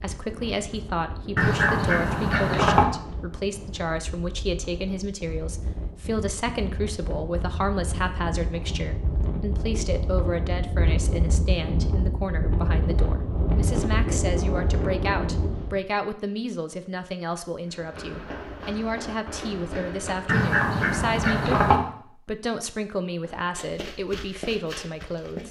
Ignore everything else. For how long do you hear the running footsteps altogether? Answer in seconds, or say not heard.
5 s.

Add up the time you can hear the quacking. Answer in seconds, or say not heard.
3 s.